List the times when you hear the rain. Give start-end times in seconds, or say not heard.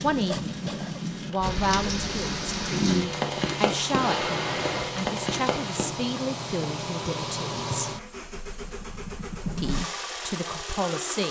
0.0-5.9.